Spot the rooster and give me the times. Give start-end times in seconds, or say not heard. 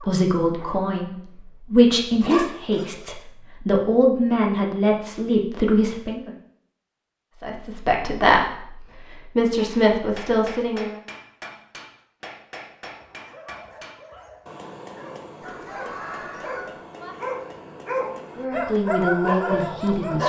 15.4-16.8.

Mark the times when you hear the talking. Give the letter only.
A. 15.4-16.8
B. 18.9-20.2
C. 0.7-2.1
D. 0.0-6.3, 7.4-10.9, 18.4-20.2
D.